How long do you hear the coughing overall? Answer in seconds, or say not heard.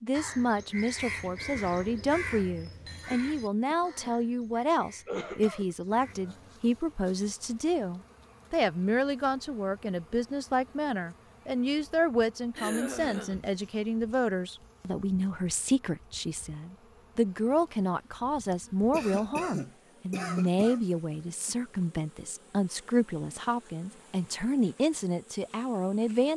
4 s.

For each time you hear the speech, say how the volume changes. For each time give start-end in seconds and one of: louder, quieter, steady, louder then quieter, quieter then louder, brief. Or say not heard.
0.0-26.3 steady.